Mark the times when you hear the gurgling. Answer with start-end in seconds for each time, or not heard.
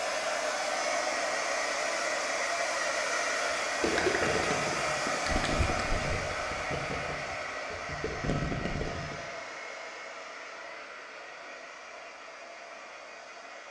3.8-9.2.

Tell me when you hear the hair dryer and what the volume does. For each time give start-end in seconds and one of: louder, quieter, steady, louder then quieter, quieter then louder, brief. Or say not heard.
0.0-13.6 quieter.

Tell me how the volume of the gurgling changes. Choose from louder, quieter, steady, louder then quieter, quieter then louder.
quieter then louder.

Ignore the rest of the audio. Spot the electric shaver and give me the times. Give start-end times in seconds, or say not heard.
not heard.